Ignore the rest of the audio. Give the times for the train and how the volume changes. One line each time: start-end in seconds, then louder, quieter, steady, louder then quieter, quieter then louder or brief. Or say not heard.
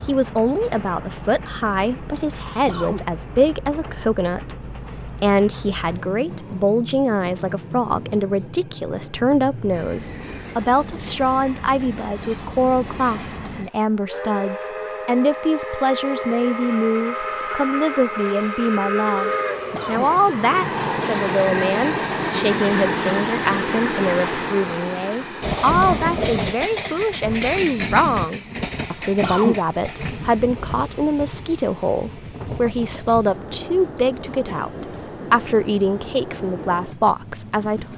0.0-37.9 louder then quieter.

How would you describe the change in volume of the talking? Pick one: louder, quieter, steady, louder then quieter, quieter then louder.
steady.